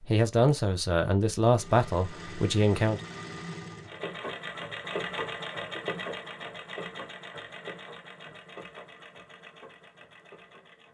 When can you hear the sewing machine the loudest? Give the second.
5 s.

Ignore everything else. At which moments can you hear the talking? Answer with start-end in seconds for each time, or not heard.
0.1-3.0.